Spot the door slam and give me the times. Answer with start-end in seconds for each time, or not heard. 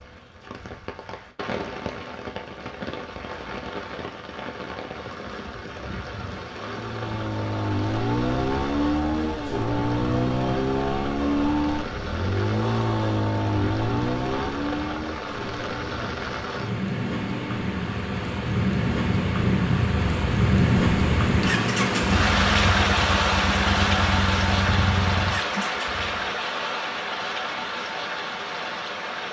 not heard.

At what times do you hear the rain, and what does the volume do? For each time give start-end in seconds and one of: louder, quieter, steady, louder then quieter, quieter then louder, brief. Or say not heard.
0.0-29.2 louder.